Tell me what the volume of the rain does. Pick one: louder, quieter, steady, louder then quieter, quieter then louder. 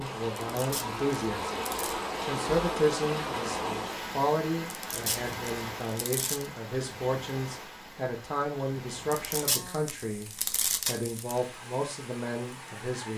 quieter.